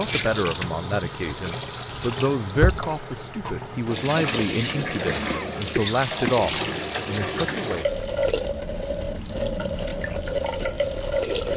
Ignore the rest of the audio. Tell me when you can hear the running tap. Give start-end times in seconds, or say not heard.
0.0-11.5.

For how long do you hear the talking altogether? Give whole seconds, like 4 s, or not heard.
8 s.